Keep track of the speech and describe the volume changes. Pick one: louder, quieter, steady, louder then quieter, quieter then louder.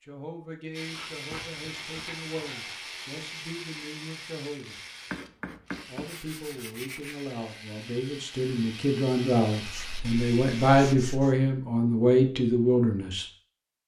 louder.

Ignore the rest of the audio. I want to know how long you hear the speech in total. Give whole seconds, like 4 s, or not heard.
12 s.